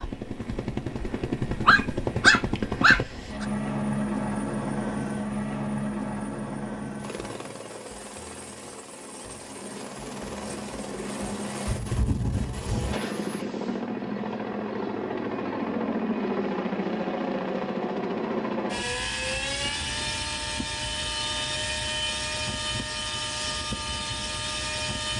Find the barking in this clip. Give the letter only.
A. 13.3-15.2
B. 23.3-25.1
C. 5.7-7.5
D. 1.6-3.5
D.